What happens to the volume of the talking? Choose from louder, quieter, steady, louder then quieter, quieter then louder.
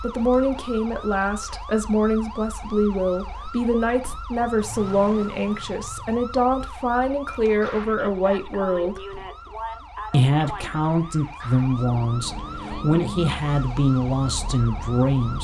steady.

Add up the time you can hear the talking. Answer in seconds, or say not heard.
14 s.